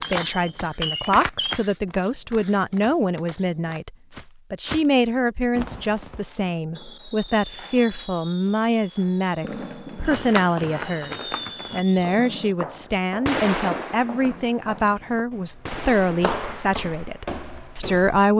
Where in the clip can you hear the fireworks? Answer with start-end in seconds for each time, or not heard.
0.0-1.6, 5.5-16.4.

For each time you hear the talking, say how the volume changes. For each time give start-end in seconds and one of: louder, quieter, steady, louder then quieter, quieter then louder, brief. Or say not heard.
0.1-18.3 steady.